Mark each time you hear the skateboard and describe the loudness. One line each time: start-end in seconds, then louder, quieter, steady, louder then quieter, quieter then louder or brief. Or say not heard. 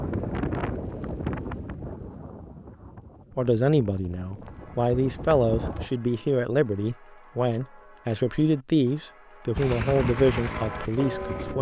not heard.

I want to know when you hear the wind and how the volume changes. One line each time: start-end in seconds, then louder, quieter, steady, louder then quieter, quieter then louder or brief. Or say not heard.
0.0-5.9 quieter then louder.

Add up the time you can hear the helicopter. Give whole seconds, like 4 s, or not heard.
4 s.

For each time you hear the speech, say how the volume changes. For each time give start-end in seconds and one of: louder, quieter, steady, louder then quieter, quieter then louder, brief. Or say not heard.
3.4-11.5 steady.